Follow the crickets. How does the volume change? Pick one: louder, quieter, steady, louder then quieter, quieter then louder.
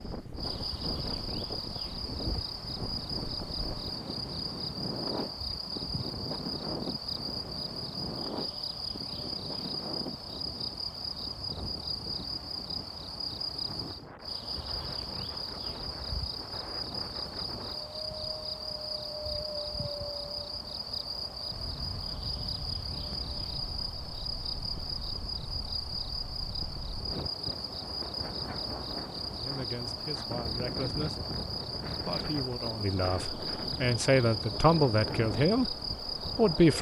steady.